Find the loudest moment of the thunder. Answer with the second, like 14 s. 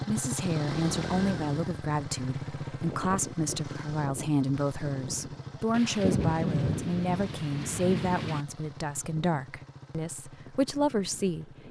6 s.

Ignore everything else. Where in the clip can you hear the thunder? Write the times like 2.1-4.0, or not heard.
5.7-8.4.